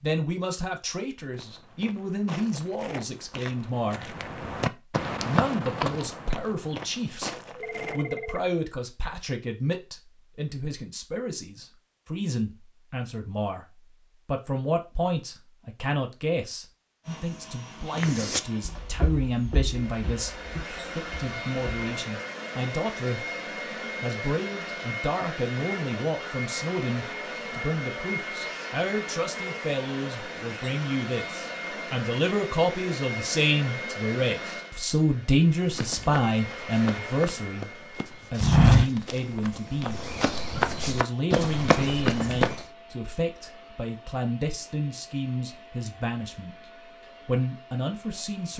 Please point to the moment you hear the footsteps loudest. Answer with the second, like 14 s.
39 s.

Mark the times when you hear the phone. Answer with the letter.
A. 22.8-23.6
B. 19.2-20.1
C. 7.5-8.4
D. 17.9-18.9
C.